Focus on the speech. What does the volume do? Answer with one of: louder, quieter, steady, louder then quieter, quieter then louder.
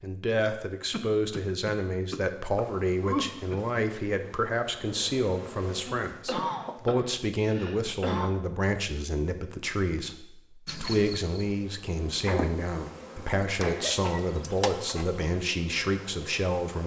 steady.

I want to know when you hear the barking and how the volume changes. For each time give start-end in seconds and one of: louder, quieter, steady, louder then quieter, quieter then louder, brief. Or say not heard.
not heard.